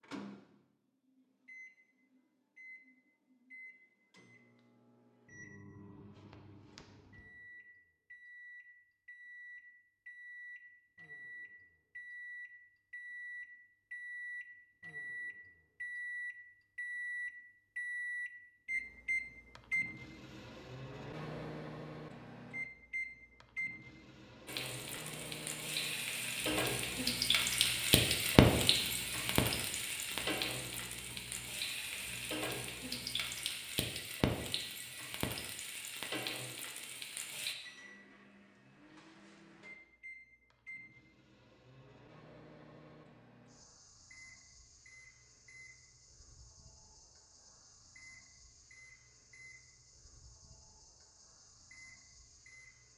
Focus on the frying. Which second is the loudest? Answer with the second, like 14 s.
28 s.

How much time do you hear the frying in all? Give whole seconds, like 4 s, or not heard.
13 s.